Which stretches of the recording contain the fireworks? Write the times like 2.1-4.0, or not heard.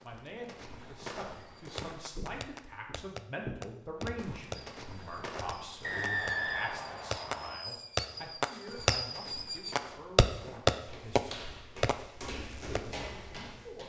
1.4-12.9.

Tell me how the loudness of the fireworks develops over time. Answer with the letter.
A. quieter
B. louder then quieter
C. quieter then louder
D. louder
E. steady
D.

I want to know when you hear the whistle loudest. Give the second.
6 s.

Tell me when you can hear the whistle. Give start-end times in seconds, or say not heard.
5.8-7.6.